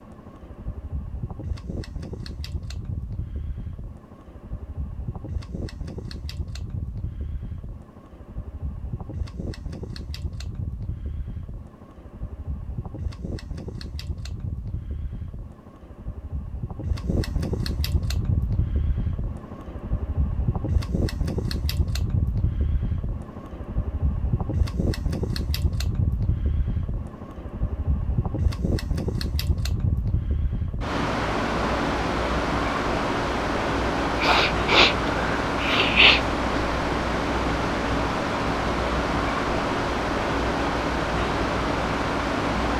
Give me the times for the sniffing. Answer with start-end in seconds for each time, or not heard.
34.2-36.2.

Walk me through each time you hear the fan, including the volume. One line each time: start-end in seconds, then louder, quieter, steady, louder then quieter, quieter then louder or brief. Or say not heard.
0.0-42.7 louder.